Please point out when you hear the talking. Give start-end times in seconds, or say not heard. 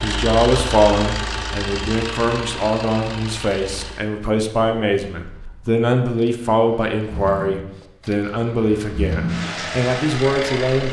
0.0-10.8.